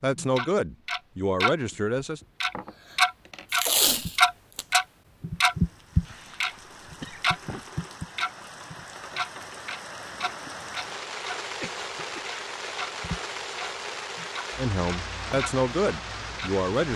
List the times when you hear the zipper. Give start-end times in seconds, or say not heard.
not heard.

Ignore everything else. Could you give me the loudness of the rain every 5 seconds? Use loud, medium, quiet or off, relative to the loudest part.
off, medium, loud, loud.